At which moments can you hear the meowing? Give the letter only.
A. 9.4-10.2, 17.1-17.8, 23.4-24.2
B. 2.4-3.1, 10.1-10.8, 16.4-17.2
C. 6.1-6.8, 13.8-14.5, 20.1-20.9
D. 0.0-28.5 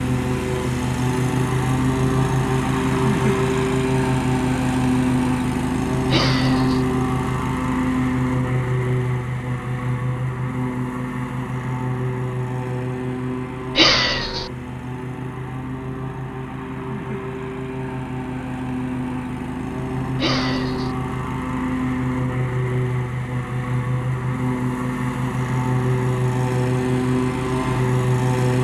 C.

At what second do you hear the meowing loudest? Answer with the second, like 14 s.
14 s.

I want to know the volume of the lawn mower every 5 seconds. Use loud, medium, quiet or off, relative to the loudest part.
loud, loud, medium, medium, loud, loud.